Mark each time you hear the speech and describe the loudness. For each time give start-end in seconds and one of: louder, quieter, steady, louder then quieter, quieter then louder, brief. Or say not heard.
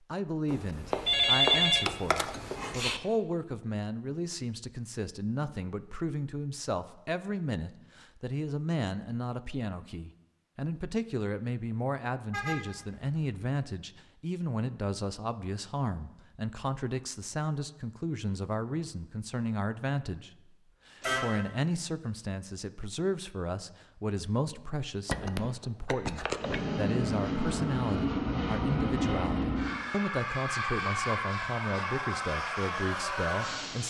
0.1-33.8 steady.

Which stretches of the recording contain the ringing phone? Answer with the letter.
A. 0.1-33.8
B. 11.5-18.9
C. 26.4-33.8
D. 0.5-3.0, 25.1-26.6
D.